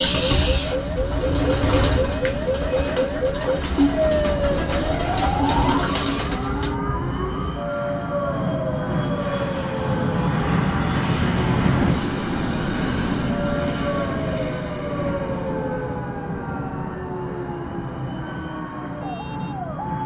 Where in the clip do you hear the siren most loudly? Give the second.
4 s.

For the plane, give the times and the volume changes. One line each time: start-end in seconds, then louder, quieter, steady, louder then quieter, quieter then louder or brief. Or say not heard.
0.0-20.0 louder then quieter.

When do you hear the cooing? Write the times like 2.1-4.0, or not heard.
0.0-6.8.